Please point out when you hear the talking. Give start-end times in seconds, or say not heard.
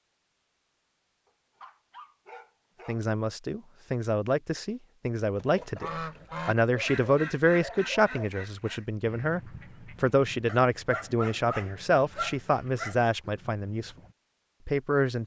2.9-13.9, 14.7-15.2.